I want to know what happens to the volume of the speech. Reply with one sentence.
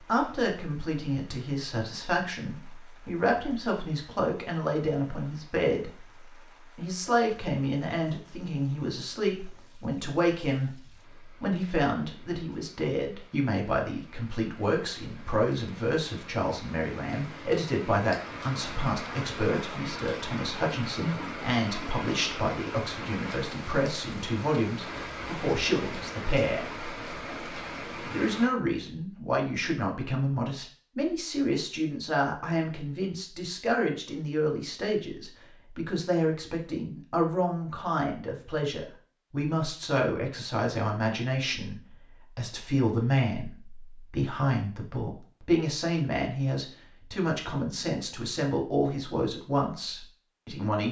The volume of the speech stays about the same.